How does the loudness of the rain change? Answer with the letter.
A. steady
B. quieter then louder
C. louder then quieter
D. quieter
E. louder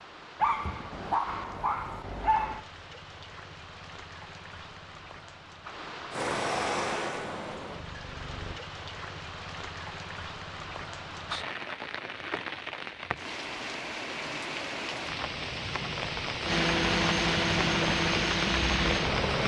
E.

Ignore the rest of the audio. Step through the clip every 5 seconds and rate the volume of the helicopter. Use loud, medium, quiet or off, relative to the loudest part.
off, medium, off, loud.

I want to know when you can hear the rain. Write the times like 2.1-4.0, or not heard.
0.0-19.4.